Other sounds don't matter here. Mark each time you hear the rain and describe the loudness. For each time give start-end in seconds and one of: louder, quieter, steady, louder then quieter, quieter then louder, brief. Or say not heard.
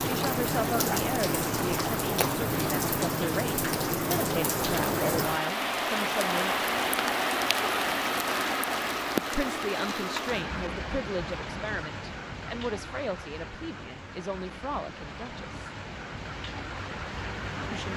0.0-17.9 quieter.